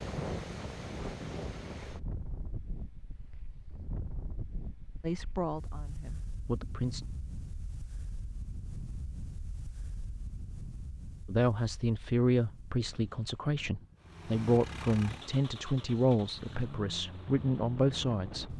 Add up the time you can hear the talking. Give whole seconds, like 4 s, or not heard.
9 s.